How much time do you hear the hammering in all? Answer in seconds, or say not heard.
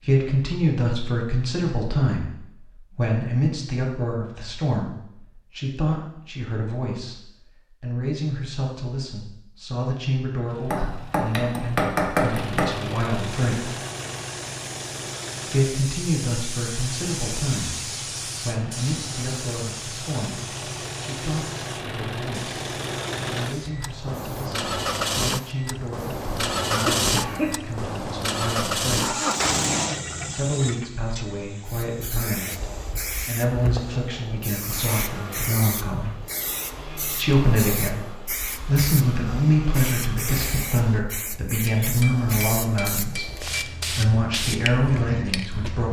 4 s.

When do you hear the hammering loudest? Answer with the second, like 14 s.
12 s.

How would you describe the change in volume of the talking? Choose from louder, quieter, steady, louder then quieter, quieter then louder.
quieter then louder.